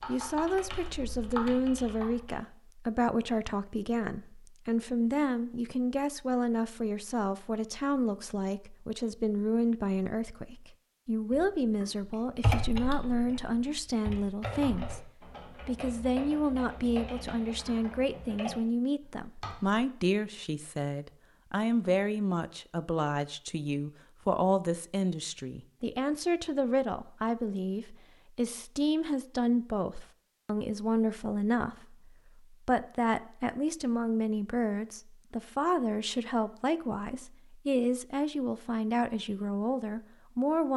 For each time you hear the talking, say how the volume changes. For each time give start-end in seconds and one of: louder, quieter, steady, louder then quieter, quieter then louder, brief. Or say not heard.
0.1-40.7 steady.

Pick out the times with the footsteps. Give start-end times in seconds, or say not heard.
not heard.